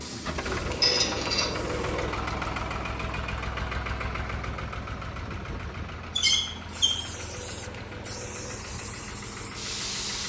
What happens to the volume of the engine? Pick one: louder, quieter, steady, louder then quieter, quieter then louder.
quieter.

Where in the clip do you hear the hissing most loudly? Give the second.
10 s.